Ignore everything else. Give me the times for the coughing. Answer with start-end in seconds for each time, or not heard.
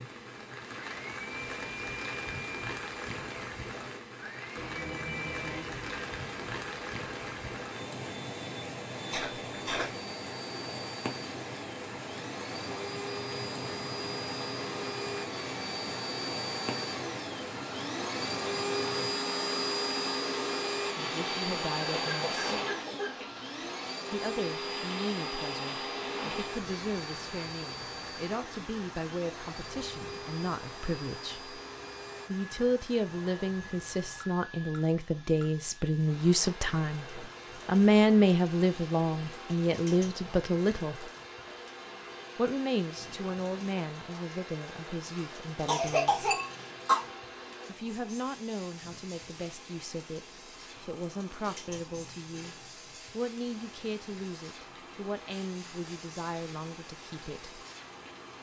9.1-9.9, 21.8-23.2, 45.1-47.0.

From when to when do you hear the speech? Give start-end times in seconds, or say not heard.
20.9-22.4, 24.1-31.6, 32.2-41.1, 42.4-46.3, 47.6-57.5.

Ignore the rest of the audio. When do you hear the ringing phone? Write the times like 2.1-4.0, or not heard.
4.5-6.0.